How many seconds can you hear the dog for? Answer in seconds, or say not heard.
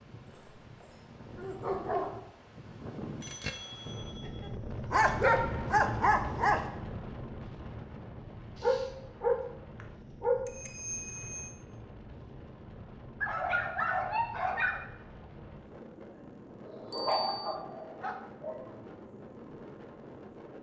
9 s.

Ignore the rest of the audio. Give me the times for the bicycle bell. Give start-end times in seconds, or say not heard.
3.2-4.0, 10.4-11.4, 16.9-17.5.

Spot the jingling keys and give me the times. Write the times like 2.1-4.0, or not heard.
not heard.